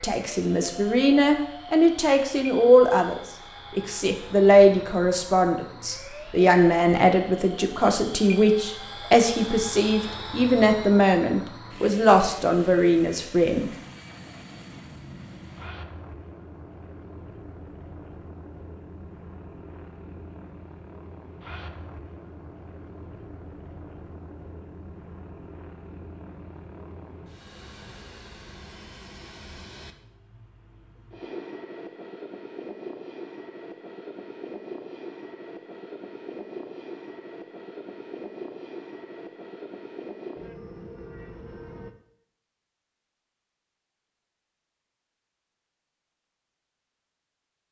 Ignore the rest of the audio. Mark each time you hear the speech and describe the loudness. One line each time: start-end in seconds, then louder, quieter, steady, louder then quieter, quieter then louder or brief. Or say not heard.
0.0-13.7 steady.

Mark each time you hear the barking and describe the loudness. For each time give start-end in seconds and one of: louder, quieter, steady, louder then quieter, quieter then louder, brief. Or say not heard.
not heard.